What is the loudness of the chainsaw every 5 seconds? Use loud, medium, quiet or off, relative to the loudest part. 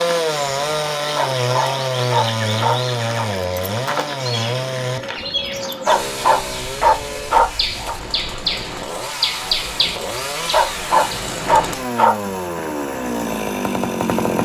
loud, medium, loud.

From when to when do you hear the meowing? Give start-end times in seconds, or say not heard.
not heard.